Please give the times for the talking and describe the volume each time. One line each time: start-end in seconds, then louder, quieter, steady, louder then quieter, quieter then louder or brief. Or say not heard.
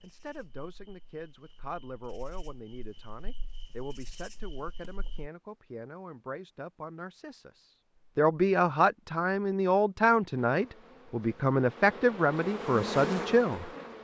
0.0-13.7 louder.